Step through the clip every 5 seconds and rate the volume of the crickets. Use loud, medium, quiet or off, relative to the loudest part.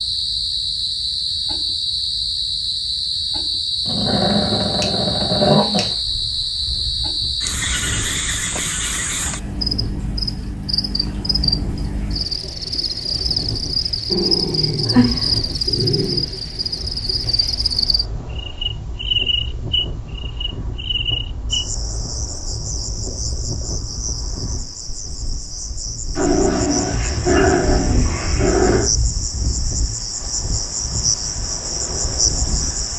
loud, loud, loud, loud, medium, medium, loud.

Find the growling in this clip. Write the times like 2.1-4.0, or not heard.
3.9-5.9, 14.1-16.3, 26.1-28.9.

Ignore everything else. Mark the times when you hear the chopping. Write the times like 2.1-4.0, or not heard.
not heard.